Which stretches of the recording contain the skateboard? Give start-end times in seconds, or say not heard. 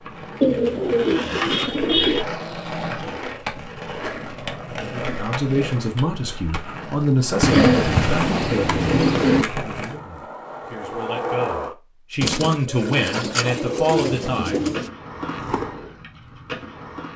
0.0-11.8, 14.6-17.1.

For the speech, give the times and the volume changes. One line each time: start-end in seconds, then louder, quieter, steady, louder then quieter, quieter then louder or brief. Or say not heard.
4.8-14.6 quieter then louder.